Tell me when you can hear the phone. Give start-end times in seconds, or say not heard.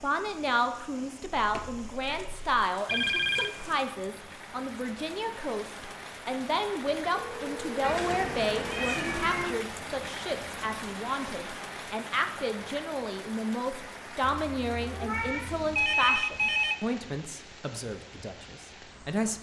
2.9-3.5, 7.1-8.8, 15.8-16.8.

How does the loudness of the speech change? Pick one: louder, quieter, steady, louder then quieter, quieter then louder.
steady.